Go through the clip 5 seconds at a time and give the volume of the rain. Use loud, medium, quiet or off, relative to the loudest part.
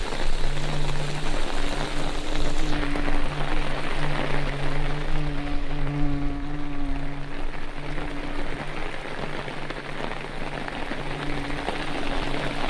loud, medium, loud.